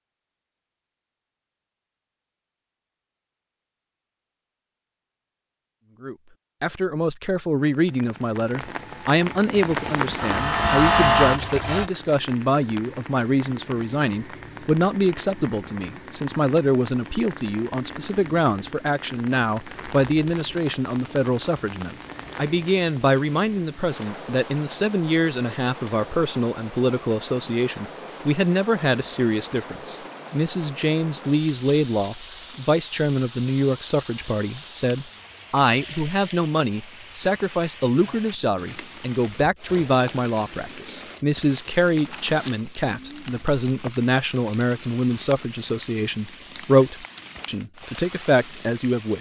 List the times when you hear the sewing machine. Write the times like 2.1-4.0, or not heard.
9.6-11.9.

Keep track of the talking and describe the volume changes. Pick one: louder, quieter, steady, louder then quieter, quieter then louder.
steady.